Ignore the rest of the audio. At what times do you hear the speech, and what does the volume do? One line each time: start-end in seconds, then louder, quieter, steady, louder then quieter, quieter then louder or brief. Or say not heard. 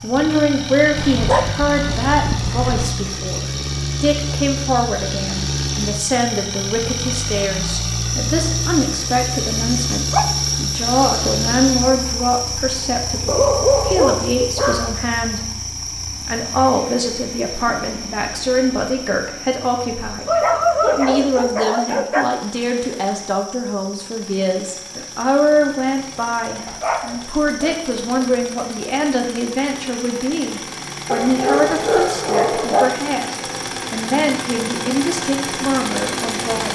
0.0-36.7 steady.